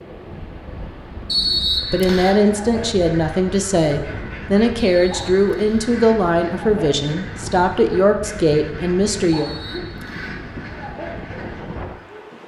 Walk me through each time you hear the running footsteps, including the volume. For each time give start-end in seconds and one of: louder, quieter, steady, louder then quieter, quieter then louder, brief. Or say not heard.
not heard.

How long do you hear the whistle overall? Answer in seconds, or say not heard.
3 s.